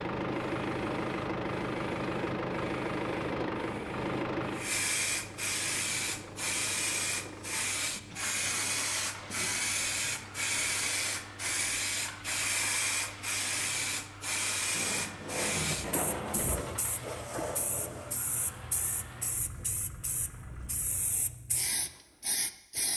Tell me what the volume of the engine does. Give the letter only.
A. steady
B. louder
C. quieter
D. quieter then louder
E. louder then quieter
C.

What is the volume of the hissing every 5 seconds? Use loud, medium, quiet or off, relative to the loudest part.
medium, loud, loud, medium, medium.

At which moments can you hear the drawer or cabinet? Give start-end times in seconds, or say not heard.
14.7-16.6.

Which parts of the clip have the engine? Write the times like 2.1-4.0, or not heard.
0.0-21.2.